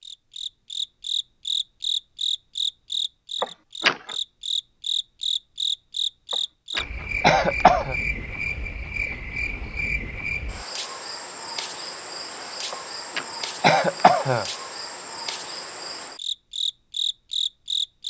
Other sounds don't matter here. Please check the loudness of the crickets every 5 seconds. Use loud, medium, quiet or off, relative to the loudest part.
loud, loud, medium, loud.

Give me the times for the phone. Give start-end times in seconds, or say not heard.
not heard.